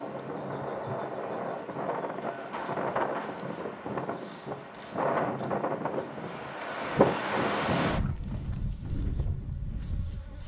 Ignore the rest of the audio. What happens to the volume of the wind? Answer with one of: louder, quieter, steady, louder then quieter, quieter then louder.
louder then quieter.